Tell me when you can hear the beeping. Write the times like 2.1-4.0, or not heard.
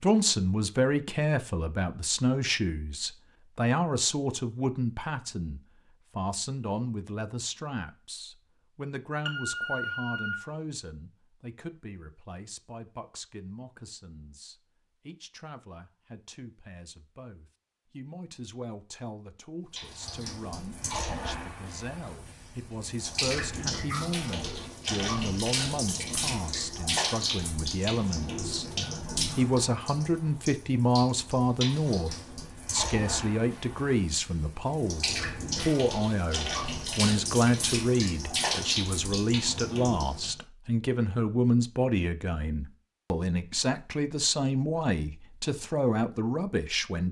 9.2-10.3.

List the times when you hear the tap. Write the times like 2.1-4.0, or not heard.
19.8-40.4.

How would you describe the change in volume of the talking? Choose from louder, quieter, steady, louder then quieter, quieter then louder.
quieter then louder.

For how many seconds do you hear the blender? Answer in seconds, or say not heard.
not heard.